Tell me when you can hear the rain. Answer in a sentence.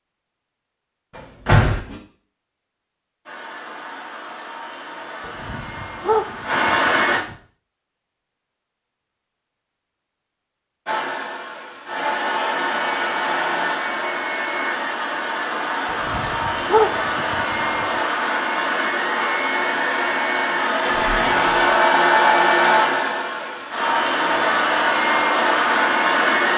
The rain can't be heard in this clip.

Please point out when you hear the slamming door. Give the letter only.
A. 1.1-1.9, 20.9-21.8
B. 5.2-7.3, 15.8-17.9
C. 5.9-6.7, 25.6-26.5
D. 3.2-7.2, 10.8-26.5
A.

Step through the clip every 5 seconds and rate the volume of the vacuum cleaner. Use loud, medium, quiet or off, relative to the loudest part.
quiet, medium, medium, medium, loud, loud.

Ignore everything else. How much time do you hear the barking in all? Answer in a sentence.
The barking can be heard for 4 seconds in total.